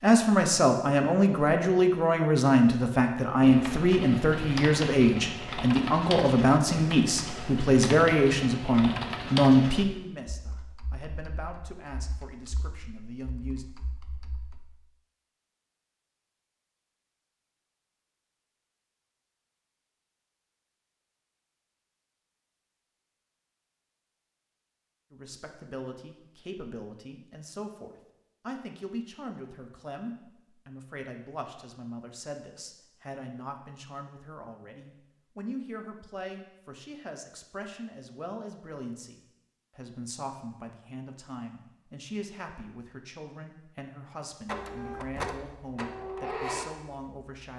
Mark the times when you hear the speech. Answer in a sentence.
You can hear the speech from 0.0 to 13.7 s and from 25.1 to 47.5 s.